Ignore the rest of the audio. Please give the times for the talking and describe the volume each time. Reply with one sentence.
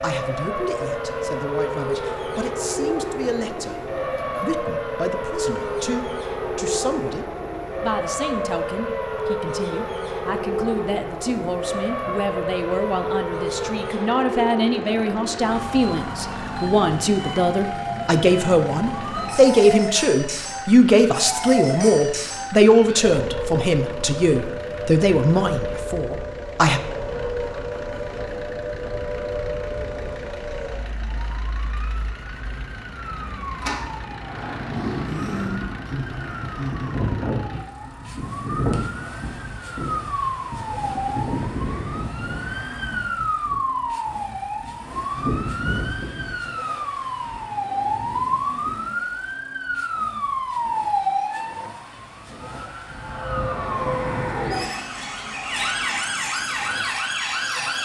The talking can be heard from 0.0 to 26.8 s, getting louder.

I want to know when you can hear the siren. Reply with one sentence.
The siren can be heard from 0.0 to 57.7 s.